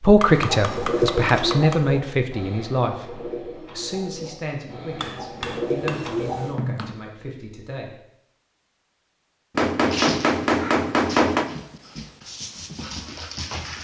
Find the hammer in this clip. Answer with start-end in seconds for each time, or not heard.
0.1-1.9, 5.0-7.0, 9.6-11.5.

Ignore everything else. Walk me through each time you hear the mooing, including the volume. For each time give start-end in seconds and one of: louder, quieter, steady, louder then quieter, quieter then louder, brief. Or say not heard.
not heard.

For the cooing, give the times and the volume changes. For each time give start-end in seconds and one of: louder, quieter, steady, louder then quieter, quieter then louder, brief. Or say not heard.
0.2-6.5 quieter then louder.